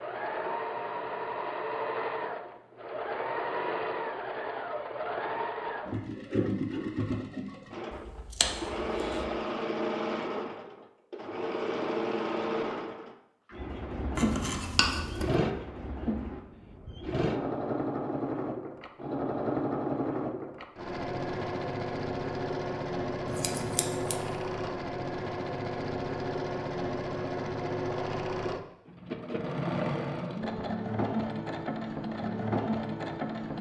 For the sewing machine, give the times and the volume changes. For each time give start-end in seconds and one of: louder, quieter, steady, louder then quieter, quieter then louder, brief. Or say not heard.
0.0-33.5 steady.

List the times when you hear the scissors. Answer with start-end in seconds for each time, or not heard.
7.9-9.2, 14.2-15.3, 23.2-24.1.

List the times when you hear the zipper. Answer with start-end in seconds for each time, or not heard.
not heard.